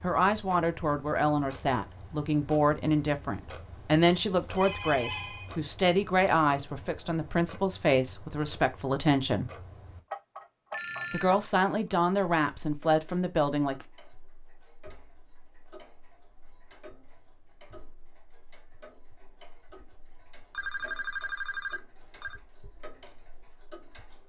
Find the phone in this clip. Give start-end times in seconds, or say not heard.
4.1-5.8, 10.7-11.5, 20.5-22.4.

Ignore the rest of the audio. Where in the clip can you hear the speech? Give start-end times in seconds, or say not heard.
0.0-9.5, 11.1-13.8.